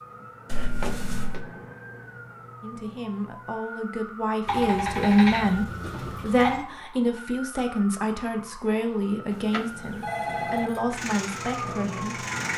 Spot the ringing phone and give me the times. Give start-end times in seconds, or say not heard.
0.5-1.4, 4.5-6.7, 9.3-10.7.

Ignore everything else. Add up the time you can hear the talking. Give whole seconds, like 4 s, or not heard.
10 s.